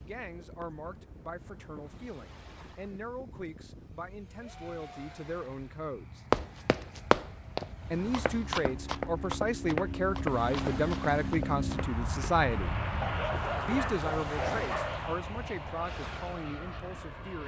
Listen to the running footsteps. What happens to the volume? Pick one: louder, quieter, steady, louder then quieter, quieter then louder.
quieter.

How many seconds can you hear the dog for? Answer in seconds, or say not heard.
2 s.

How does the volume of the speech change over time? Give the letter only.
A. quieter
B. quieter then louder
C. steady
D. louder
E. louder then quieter
E.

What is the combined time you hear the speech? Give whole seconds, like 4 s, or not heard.
15 s.